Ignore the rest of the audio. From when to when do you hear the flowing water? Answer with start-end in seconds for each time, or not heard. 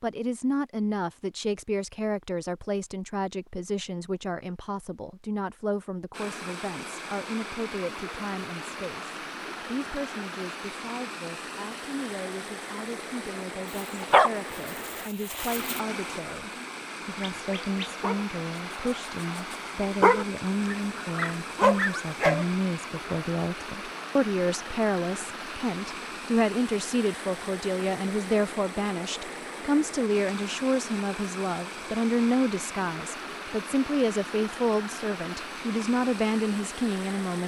6.1-37.4.